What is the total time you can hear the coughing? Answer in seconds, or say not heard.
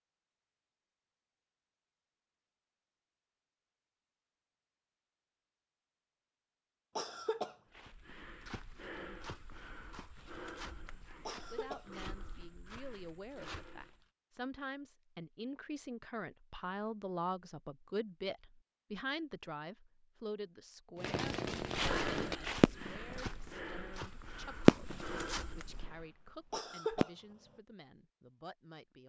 2 s.